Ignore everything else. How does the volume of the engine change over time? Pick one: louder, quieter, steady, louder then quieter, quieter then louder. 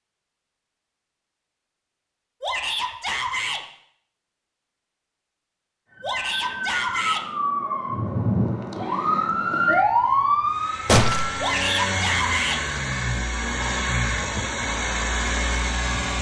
steady.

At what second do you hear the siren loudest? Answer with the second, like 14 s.
10 s.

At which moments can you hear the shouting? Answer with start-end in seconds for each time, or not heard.
2.4-3.6, 6.0-7.2, 11.4-12.6.